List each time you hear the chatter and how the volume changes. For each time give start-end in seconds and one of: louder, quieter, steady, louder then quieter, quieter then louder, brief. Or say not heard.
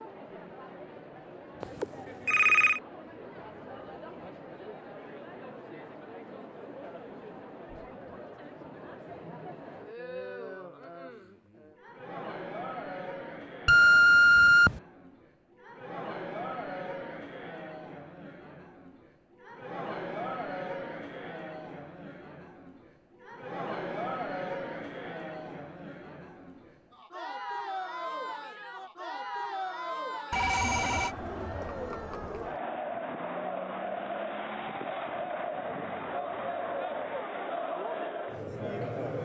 0.0-39.2 louder.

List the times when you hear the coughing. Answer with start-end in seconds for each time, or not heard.
not heard.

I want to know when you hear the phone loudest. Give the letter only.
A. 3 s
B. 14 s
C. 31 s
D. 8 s
B.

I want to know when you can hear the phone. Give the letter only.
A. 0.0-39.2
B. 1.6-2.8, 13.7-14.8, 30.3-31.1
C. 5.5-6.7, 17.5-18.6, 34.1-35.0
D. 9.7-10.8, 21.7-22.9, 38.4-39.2
B.